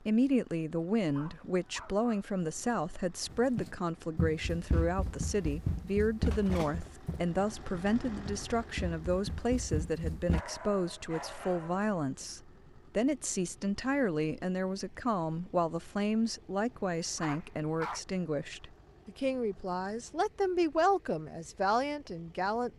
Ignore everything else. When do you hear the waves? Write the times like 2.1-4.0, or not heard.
not heard.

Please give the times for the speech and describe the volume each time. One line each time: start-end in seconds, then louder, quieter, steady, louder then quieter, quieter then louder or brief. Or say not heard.
0.0-22.7 steady.